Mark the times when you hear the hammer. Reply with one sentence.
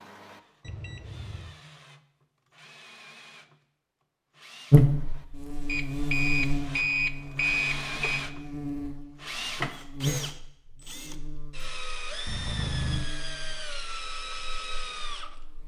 The hammer can't be heard in this clip.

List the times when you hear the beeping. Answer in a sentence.
You can hear the beeping from 0.6 to 1.6 s, from 5.7 to 8.2 s and from 12.2 to 13.1 s.